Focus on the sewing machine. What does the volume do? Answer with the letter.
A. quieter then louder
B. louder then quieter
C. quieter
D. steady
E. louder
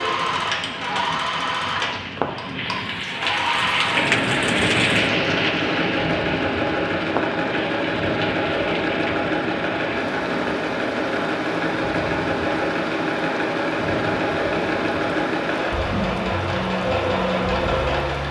D.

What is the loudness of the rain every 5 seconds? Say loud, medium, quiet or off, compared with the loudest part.
loud, loud, medium, medium.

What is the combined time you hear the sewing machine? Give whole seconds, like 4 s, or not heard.
18 s.